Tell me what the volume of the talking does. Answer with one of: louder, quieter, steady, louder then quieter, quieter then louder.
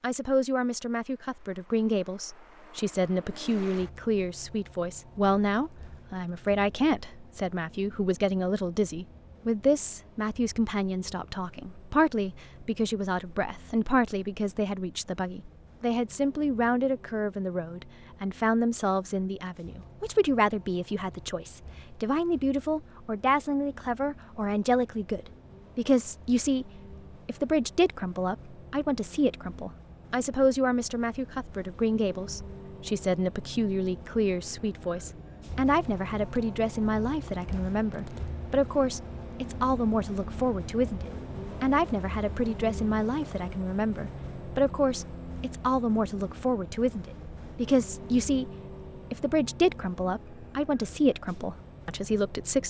steady.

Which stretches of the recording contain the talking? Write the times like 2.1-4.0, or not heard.
0.0-48.5, 49.1-52.6.